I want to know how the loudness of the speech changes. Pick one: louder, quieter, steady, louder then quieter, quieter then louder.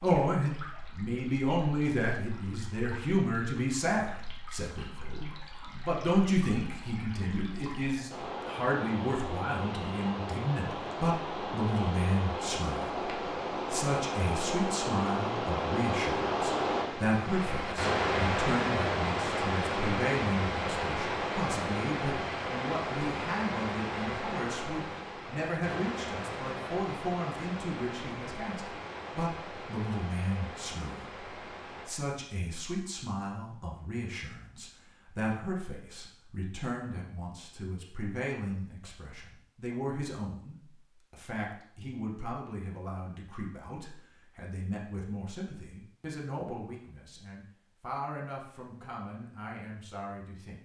quieter.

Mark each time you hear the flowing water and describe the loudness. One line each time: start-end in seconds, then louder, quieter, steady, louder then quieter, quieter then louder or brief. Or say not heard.
0.0-31.9 louder then quieter.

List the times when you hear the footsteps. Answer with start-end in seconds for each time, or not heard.
not heard.